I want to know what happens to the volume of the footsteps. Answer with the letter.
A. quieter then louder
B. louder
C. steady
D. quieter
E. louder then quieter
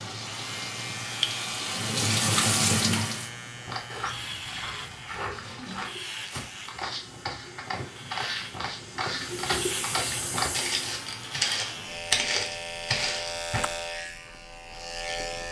B.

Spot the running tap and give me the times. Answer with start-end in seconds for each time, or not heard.
0.0-3.3, 5.2-11.1.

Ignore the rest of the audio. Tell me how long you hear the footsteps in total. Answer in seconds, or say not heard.
10 s.